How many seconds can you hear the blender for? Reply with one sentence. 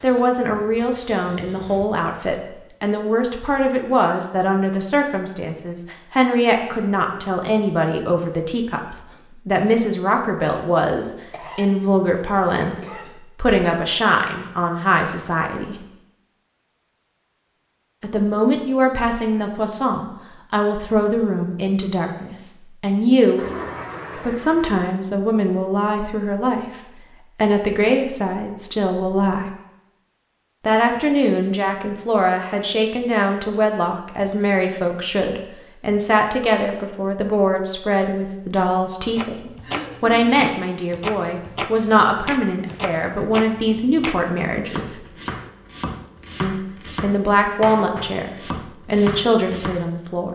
The blender can't be heard in this clip.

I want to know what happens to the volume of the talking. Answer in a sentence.
The volume of the talking stays about the same.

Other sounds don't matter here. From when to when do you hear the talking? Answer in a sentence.
You can hear the talking from 0.0 to 15.8 s, from 18.0 to 23.4 s, from 24.1 to 29.5 s, from 30.6 to 45.0 s and from 46.4 to 50.2 s.